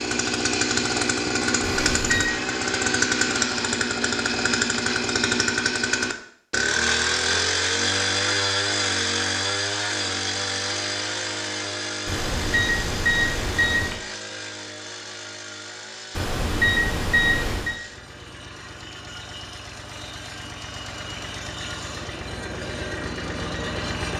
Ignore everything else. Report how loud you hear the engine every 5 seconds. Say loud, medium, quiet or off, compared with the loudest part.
loud, loud, medium, quiet, medium.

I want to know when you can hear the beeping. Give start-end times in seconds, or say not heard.
1.6-2.3, 12.1-13.9, 16.1-17.8.